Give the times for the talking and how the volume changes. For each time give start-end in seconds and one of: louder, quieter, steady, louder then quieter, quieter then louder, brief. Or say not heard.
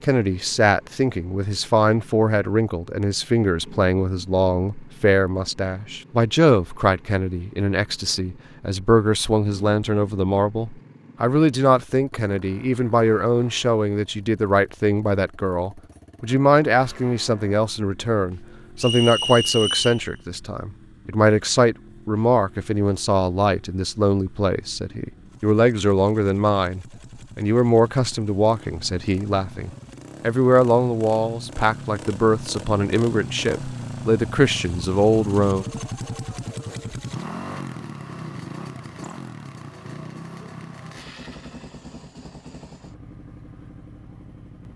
0.0-35.6 steady.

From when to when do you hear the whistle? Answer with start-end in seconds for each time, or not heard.
18.8-20.1.